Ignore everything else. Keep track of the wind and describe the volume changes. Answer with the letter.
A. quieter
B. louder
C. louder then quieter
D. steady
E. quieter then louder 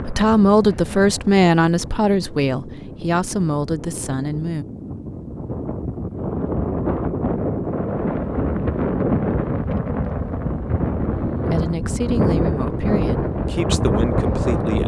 B.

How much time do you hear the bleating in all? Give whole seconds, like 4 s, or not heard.
not heard.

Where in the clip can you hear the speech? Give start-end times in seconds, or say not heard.
0.1-4.7, 11.4-14.8.